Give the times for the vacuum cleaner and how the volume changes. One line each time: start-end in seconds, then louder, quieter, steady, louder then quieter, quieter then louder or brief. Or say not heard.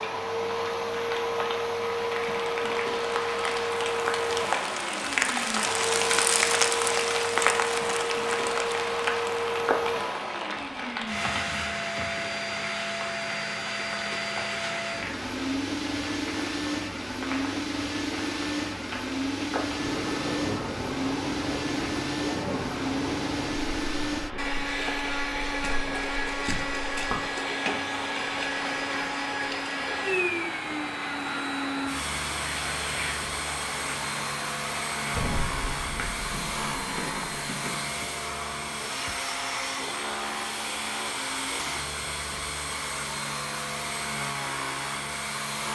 0.0-45.7 steady.